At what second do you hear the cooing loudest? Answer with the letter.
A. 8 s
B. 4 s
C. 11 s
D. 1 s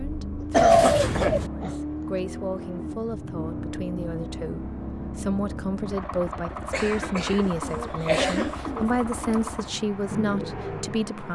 D.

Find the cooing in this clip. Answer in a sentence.
You can hear the cooing from 0.6 to 1.5 s and from 7.2 to 9.6 s.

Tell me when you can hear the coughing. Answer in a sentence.
The coughing can be heard from 0.4 to 1.8 s and from 6.7 to 8.6 s.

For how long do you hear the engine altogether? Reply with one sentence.
You can hear the engine for 11 seconds altogether.